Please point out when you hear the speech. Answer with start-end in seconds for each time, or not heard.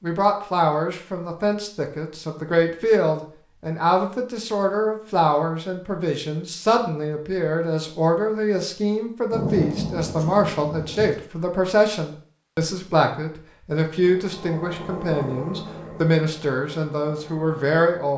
0.0-18.1.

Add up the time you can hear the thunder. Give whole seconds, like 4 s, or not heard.
2 s.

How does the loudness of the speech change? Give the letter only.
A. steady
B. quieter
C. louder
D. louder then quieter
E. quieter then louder
A.